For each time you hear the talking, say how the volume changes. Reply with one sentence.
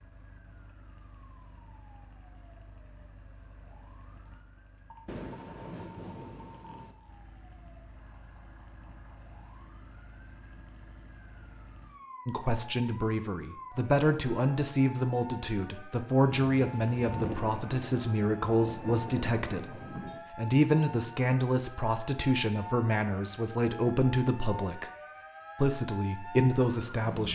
The talking can be heard from 12.2 to 24.9 s, at a steady volume; and briefly from 25.6 to 27.3 s.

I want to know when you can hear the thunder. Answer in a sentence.
You can hear the thunder from 5.0 to 7.0 s and from 16.6 to 20.2 s.